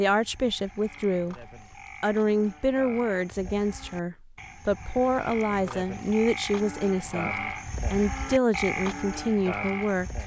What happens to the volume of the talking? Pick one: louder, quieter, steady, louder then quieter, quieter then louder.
steady.